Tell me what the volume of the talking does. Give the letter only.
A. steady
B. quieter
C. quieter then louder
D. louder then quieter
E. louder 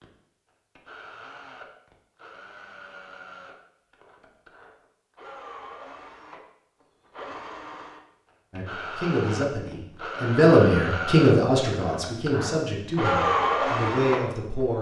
D.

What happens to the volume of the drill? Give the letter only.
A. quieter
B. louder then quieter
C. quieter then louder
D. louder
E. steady
D.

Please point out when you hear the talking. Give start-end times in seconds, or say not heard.
8.5-14.7.